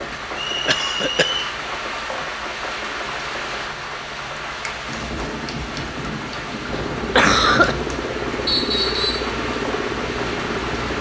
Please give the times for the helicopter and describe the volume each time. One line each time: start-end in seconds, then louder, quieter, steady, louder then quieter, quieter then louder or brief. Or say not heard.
6.7-10.9 steady.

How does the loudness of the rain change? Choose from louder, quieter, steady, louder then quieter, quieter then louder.
steady.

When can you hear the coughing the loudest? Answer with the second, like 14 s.
7 s.